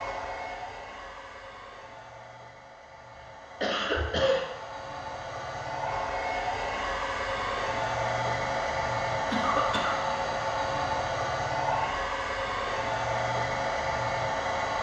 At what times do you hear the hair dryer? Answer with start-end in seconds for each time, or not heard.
0.0-14.7.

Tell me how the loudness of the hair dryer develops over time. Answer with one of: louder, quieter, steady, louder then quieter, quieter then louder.
louder.